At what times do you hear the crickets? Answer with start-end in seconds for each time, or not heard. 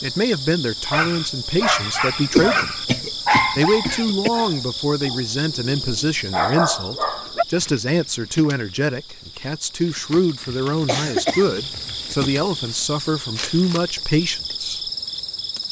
0.0-15.6.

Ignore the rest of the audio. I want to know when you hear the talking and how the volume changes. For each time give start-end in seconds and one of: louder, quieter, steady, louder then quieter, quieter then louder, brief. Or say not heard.
0.0-2.9 brief
3.5-14.9 steady.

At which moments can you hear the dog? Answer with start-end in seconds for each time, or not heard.
0.9-7.5.